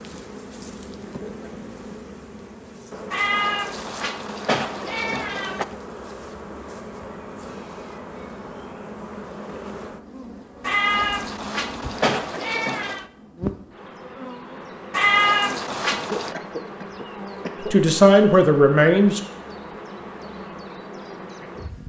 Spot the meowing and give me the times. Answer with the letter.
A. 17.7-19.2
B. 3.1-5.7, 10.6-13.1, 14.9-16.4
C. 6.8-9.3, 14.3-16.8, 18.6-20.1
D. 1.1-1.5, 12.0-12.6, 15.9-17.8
B.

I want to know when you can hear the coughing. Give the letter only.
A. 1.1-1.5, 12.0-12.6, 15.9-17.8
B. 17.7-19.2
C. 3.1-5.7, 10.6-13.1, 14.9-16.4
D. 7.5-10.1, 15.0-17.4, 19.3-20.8
A.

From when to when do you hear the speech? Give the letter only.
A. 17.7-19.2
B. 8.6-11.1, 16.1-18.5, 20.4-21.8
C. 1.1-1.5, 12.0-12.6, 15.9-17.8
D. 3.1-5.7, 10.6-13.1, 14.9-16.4
A.